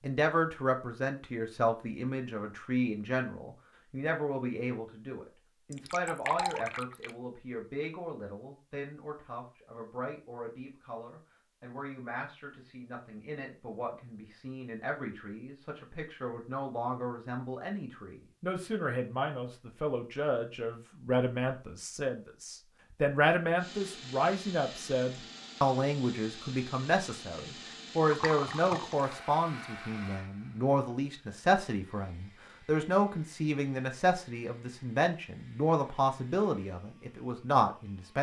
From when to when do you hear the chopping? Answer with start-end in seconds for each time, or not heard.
not heard.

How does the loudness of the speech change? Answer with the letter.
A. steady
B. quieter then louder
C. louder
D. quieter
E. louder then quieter
B.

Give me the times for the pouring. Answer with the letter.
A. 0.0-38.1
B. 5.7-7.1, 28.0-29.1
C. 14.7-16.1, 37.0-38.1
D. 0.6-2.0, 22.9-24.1
B.